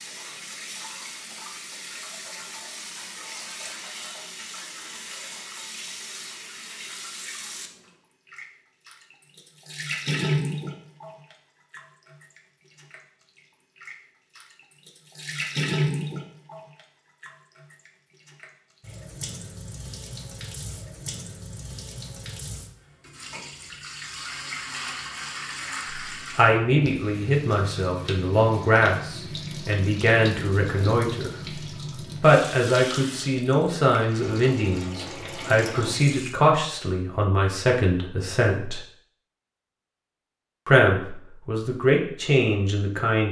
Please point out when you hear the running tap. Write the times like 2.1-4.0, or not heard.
0.0-36.4.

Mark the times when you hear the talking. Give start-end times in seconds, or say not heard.
26.4-31.3, 32.2-38.8, 40.6-43.2.